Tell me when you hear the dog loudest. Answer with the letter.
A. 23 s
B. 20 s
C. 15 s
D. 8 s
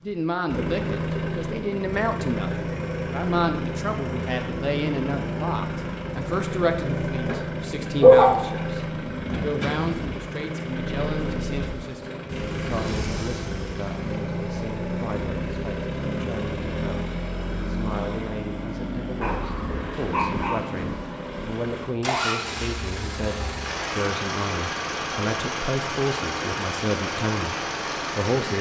D.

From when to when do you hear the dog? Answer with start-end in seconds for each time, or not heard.
8.0-8.4, 19.1-20.6.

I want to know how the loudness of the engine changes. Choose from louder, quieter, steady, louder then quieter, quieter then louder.
steady.